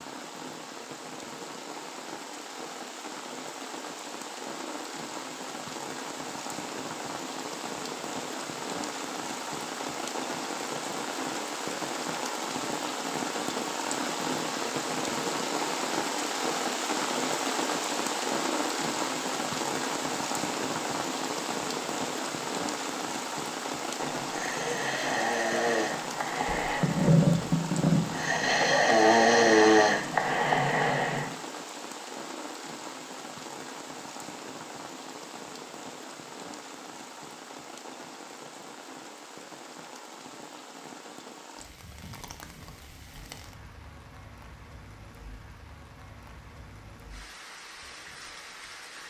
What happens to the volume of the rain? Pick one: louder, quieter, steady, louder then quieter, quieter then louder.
louder then quieter.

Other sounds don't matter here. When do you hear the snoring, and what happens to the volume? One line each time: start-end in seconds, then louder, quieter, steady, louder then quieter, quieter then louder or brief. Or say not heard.
24.0-31.3 louder.